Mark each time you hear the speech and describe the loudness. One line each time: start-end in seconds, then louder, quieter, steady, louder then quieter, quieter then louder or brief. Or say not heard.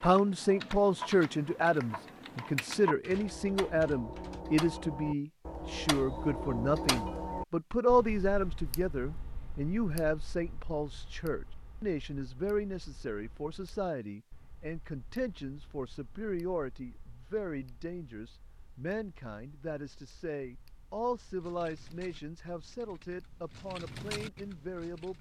0.0-25.1 quieter.